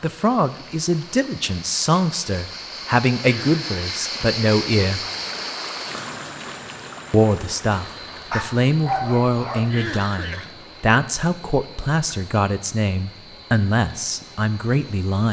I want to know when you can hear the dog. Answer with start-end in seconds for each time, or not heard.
8.3-9.8.